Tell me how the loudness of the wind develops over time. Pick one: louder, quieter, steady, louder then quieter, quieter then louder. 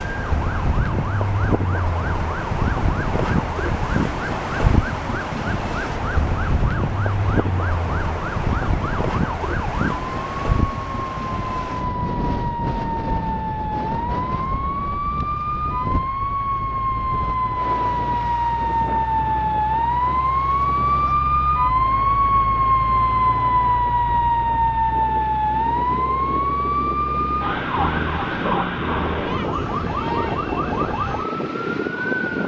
quieter then louder.